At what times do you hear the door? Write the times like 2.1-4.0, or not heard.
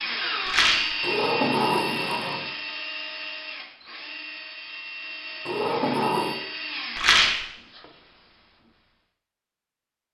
1.0-2.5, 5.5-6.4.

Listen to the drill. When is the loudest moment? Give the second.
1 s.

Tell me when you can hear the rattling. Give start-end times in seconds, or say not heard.
0.5-0.9, 7.0-7.5.